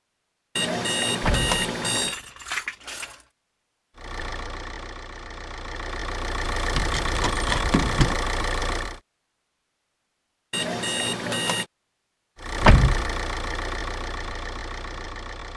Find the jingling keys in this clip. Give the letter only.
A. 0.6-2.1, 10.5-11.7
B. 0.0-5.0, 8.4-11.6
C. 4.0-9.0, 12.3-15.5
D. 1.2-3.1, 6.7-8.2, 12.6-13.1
D.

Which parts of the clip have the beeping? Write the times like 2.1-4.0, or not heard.
0.6-2.1, 10.5-11.7.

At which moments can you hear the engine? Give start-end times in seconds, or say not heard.
4.0-9.0, 12.3-15.5.